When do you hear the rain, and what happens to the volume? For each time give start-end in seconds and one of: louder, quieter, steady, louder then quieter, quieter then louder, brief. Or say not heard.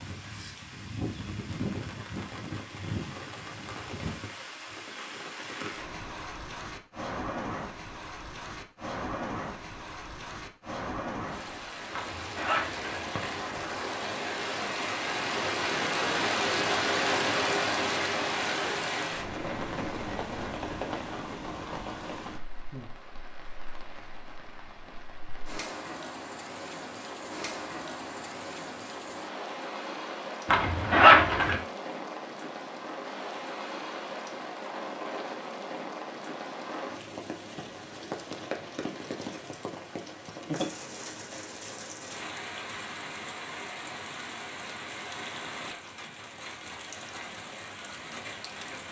0.0-48.8 louder then quieter.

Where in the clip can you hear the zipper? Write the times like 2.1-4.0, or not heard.
11.9-13.4, 30.5-31.6.